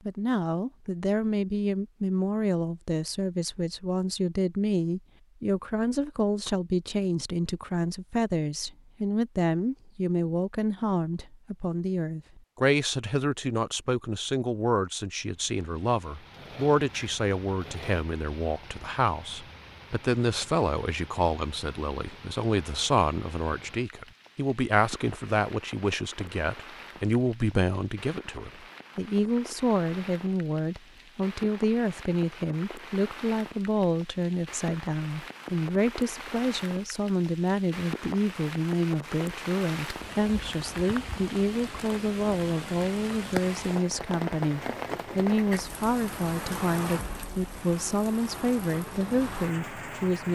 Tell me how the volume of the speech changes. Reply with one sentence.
The volume of the speech stays about the same.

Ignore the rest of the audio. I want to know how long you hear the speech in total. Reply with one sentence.
The speech can be heard for 50 seconds in total.